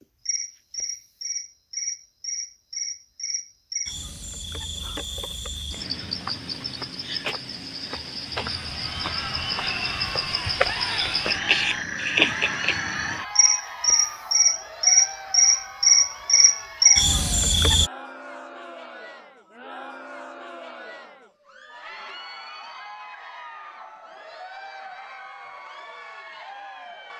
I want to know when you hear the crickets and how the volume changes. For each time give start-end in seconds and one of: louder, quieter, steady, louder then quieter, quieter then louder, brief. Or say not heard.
0.0-17.9 louder.